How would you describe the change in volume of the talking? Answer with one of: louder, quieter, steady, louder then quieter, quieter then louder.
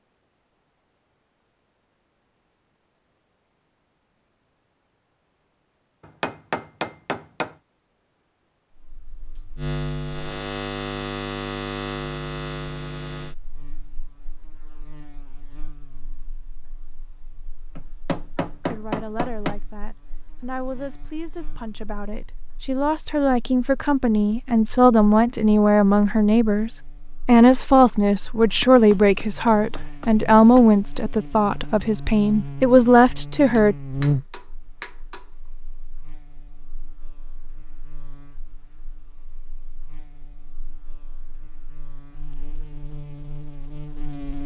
louder.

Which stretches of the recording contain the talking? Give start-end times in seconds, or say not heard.
18.6-33.8.